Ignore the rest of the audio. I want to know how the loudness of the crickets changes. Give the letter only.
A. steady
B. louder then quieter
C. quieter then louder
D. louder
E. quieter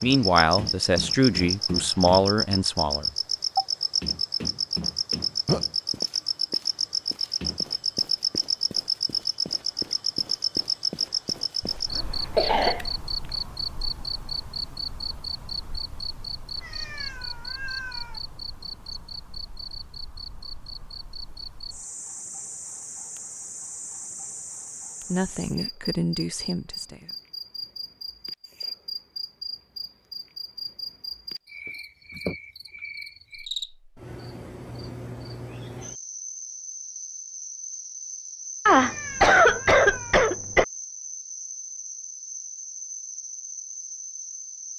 E.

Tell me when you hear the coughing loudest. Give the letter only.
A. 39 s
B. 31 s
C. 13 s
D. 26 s
A.